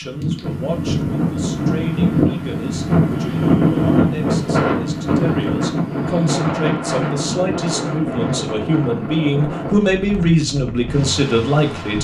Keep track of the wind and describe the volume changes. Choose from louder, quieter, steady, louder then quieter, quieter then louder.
quieter.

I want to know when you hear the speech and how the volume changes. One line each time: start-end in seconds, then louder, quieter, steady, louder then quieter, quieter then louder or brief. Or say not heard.
0.0-11.9 louder.